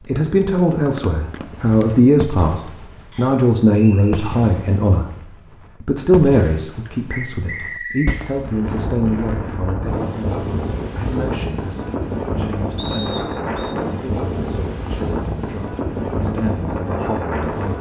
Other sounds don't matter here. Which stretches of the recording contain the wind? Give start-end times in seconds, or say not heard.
8.2-17.7.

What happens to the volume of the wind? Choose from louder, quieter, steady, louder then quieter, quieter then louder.
steady.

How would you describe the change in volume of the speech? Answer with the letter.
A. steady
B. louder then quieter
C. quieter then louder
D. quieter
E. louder
D.